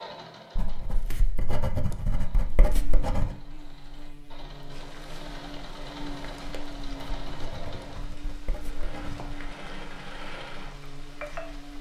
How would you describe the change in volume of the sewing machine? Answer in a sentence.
The loudness of the sewing machine goes up.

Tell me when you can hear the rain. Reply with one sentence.
The rain can be heard from 4.7 to 11.7 s.